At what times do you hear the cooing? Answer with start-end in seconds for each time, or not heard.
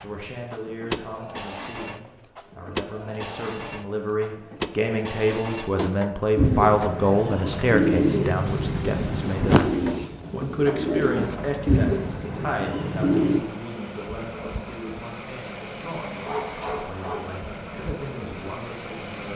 5.8-13.4.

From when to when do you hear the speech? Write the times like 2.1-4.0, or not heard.
0.0-19.3.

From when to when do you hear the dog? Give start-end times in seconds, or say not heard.
16.2-17.3.